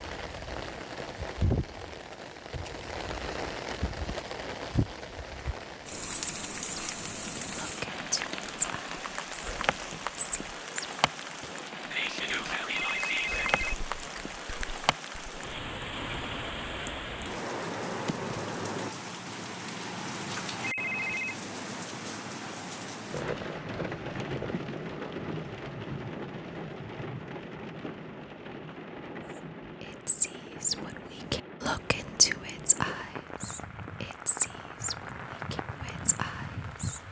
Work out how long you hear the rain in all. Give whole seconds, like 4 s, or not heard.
37 s.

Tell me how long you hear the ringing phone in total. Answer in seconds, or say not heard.
2 s.